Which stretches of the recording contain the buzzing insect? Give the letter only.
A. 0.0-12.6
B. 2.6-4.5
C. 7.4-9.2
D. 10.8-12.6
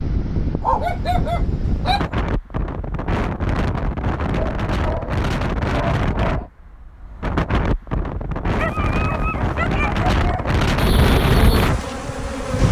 D.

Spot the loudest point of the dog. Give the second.
1 s.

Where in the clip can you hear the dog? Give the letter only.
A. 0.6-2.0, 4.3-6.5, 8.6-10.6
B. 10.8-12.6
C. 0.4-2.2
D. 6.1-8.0
A.